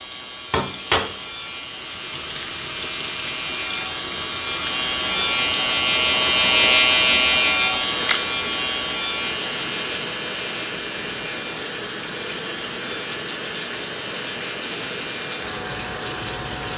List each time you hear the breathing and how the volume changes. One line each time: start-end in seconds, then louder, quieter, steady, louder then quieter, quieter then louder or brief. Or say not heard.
not heard.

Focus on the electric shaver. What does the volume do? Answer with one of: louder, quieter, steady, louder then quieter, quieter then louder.
louder then quieter.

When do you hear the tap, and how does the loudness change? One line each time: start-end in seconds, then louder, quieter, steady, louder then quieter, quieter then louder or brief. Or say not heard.
0.0-16.7 steady.